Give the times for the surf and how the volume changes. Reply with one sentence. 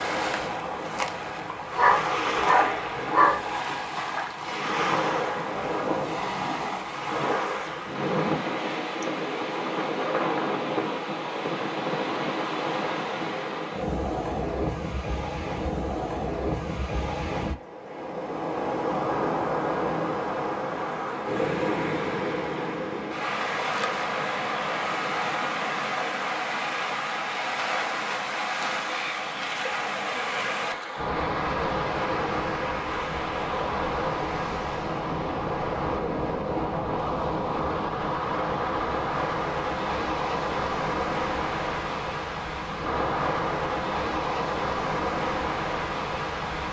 You can hear the surf from 0.0 to 46.6 s, at a steady volume.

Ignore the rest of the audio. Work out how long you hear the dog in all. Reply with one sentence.
You can hear the dog for 2 seconds altogether.